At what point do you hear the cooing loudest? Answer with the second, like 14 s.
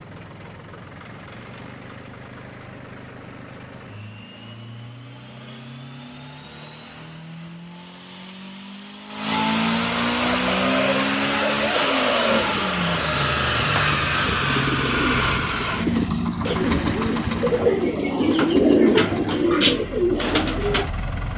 19 s.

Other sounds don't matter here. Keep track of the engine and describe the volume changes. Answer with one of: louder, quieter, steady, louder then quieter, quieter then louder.
louder then quieter.